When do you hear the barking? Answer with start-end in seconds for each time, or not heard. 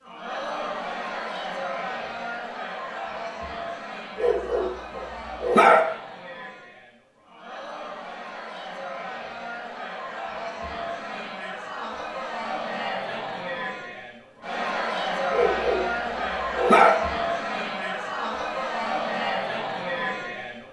4.2-5.8, 15.3-16.9.